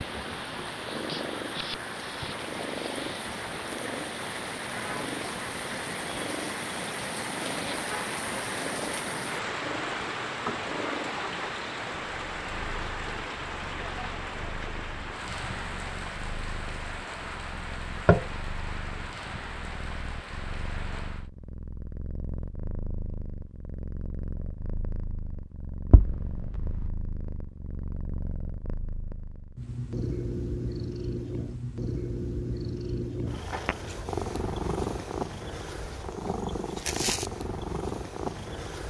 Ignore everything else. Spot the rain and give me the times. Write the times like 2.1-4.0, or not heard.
0.0-21.3.